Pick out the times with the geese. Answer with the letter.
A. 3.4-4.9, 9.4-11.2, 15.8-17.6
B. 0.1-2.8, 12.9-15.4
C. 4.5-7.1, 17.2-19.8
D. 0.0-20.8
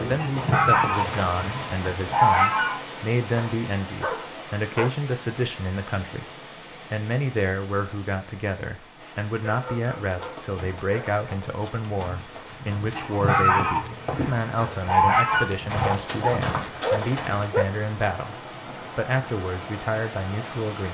B.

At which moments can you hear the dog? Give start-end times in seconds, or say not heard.
3.4-4.9, 9.4-11.2, 15.8-17.6.